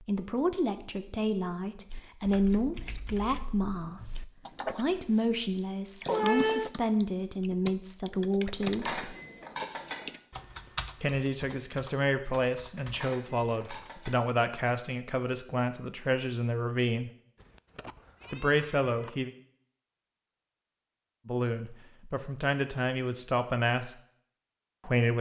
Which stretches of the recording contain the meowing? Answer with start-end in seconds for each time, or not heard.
6.0-6.7, 17.4-19.1.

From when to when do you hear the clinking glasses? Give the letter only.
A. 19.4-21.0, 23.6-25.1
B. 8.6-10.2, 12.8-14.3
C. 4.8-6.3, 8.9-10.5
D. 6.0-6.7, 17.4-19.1
B.